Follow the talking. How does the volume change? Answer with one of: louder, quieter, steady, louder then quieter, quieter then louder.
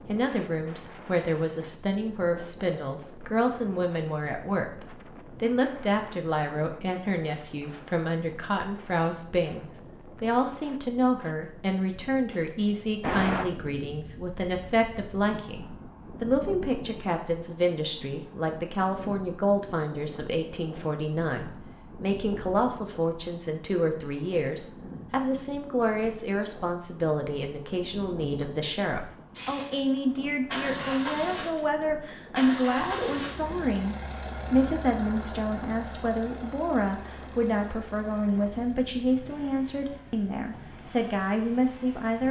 steady.